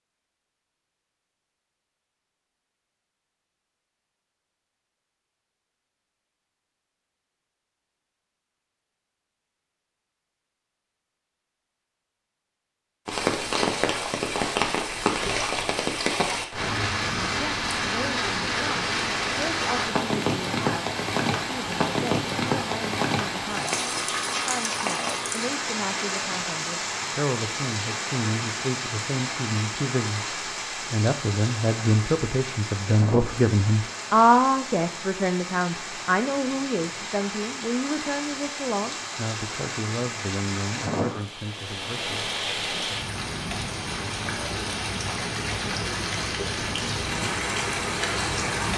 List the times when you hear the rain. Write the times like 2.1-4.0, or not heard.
13.1-48.7.